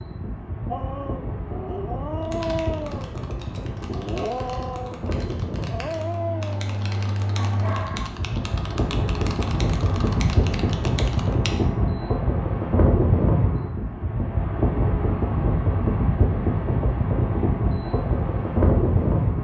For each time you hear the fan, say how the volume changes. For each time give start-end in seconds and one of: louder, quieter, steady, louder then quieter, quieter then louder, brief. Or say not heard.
0.0-19.4 louder.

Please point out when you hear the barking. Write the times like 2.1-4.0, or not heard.
0.7-8.1.